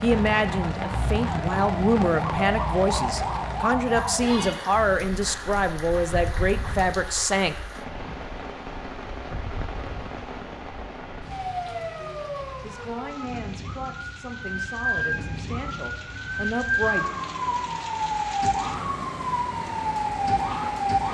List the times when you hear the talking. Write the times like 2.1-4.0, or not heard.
0.0-7.6, 12.6-17.1.